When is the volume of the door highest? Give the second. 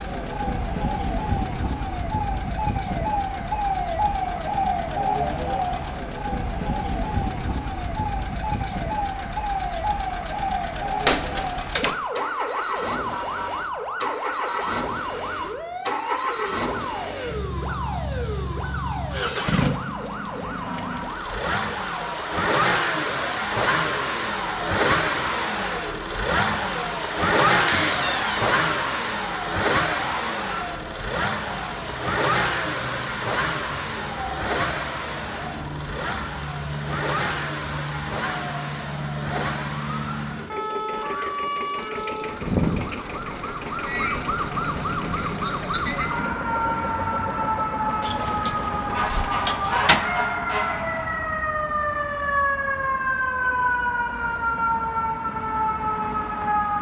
28 s.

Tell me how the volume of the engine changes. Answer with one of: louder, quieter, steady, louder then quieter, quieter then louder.
louder then quieter.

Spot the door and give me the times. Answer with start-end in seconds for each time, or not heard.
11.1-11.9, 27.6-28.6, 48.0-50.0.